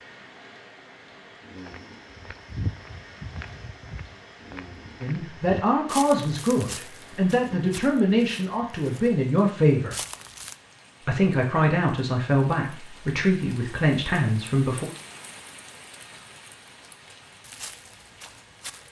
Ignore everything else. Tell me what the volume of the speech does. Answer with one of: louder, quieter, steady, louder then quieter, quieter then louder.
steady.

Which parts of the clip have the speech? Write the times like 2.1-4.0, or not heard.
5.0-9.9, 11.1-14.8.